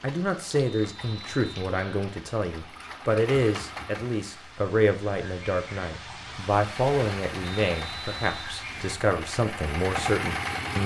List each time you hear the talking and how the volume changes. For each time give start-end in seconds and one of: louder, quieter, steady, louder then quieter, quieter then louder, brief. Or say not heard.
0.0-10.8 steady.